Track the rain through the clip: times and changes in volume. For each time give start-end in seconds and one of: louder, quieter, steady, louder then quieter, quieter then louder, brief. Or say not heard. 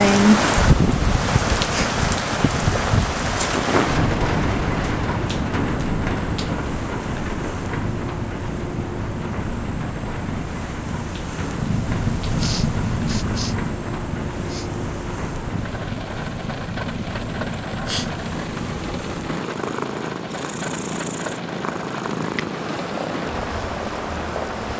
0.0-24.7 quieter.